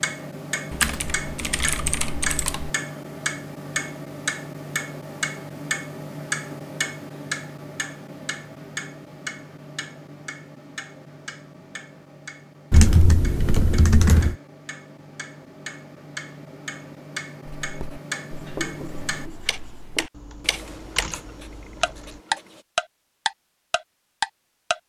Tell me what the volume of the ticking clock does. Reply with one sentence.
The volume of the ticking clock goes down, then up.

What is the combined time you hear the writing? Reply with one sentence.
You can hear the writing for 5 seconds altogether.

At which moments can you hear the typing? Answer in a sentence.
You can hear the typing from 0.7 to 2.7 s, from 12.7 to 14.3 s and from 20.1 to 22.2 s.